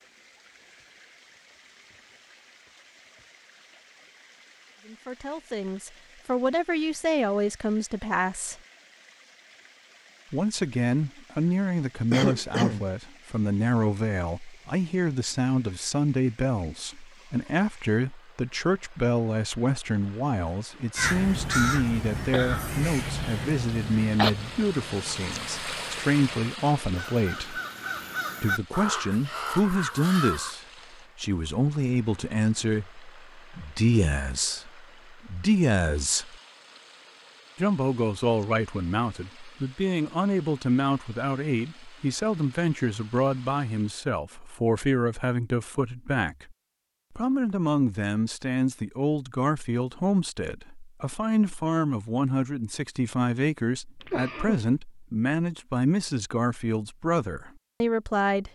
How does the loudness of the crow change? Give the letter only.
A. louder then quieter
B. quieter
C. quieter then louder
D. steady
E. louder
C.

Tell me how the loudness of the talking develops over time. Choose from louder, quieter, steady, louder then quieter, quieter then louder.
steady.